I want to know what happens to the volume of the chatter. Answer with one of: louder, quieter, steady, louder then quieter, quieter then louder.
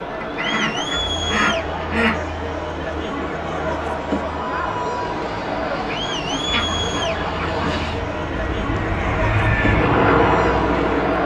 steady.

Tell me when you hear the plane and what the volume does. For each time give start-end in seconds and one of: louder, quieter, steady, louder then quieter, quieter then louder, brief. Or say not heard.
5.0-11.2 louder.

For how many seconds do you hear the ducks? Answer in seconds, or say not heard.
4 s.